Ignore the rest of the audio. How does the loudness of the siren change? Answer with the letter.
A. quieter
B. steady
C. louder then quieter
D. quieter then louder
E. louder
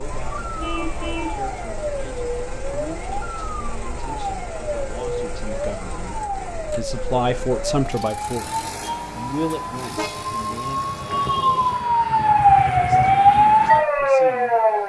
E.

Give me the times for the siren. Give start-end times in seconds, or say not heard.
0.0-14.8.